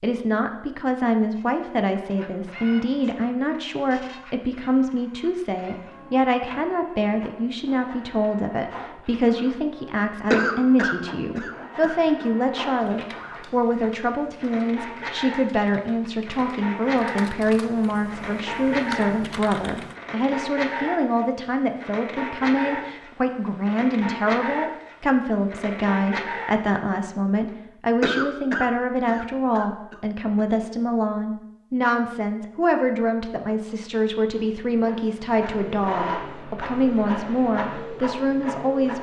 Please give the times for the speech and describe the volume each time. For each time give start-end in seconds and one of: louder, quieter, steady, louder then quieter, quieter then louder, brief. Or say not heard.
0.0-38.9 steady.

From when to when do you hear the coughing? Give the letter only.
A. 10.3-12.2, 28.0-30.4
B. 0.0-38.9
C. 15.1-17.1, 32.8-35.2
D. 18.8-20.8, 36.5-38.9
A.